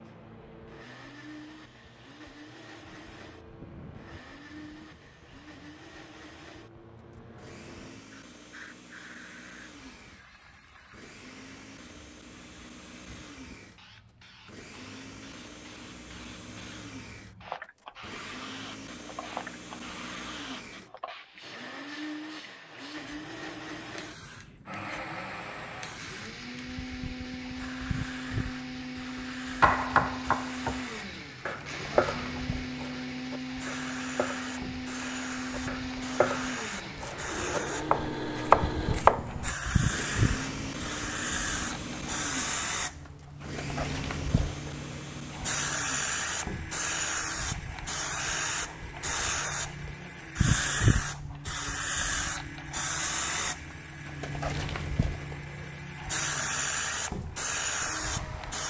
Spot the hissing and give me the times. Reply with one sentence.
You can hear the hissing from 0.0 to 58.6 s.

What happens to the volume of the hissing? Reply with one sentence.
The loudness of the hissing goes up.